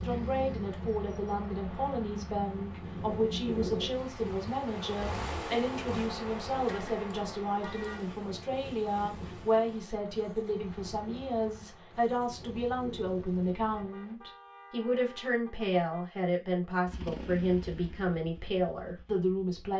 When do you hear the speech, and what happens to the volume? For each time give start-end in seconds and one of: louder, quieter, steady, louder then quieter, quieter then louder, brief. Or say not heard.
0.0-19.7 steady.